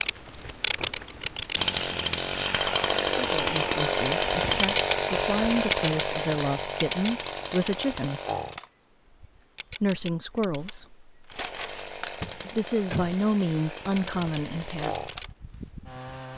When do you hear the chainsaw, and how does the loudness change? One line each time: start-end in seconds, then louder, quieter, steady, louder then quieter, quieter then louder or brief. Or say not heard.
0.0-16.3 quieter.